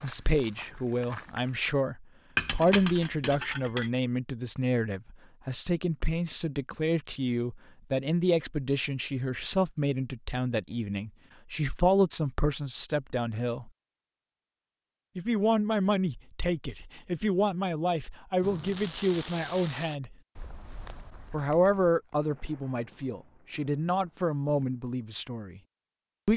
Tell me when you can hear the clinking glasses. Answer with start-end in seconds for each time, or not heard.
2.4-3.9.